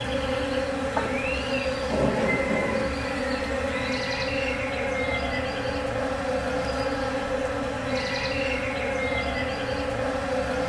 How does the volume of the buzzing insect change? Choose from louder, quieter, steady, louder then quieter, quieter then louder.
steady.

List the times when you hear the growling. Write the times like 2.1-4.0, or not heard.
0.9-3.0.